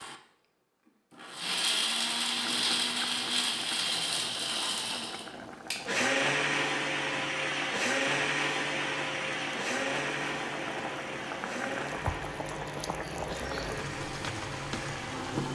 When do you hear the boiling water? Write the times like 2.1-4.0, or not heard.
2.4-15.4.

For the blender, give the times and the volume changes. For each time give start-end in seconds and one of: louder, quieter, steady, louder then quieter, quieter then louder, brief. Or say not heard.
0.0-15.4 quieter.